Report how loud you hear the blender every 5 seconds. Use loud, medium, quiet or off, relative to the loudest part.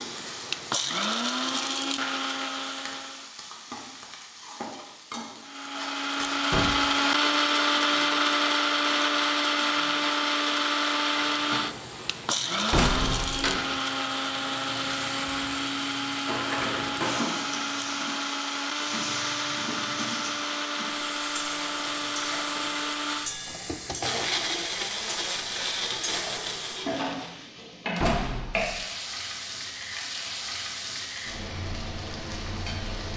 medium, loud, loud, medium, medium, medium, off.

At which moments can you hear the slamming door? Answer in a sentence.
The slamming door can be heard from 6.5 to 7.0 s, from 12.7 to 13.3 s and from 27.9 to 28.9 s.